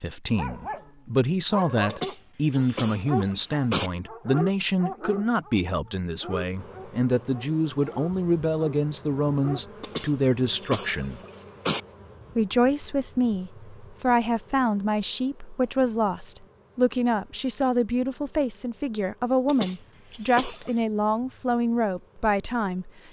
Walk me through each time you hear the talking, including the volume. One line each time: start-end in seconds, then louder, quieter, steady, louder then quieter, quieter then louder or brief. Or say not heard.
0.0-11.2 steady
12.3-22.9 steady.